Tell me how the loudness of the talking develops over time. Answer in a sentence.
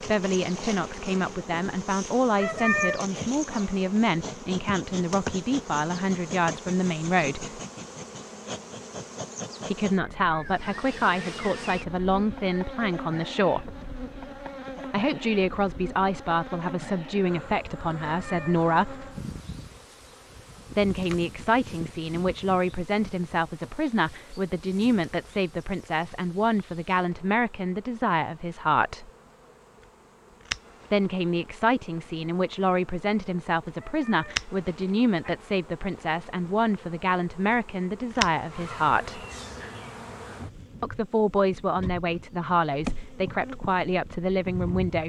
The volume of the talking stays about the same.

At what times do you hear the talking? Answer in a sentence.
You can hear the talking from 0.0 to 7.6 s, from 9.7 to 13.7 s, from 14.8 to 19.1 s, from 20.8 to 29.1 s, from 30.9 to 39.2 s and from 40.8 to 45.0 s.